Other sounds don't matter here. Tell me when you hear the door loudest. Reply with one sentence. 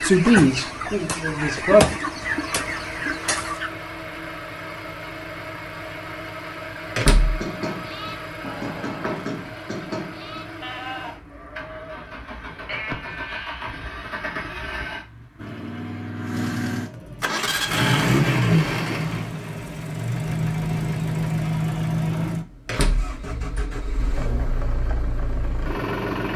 The loudest moment of the door is at 7 seconds.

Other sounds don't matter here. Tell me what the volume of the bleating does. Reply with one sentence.
The loudness of the bleating goes down, then up.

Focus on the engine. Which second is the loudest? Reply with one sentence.
The loudest moment of the engine is at 18 seconds.